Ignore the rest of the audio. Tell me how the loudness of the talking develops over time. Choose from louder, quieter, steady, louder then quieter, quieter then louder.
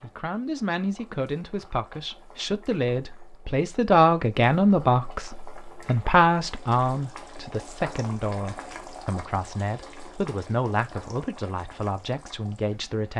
louder then quieter.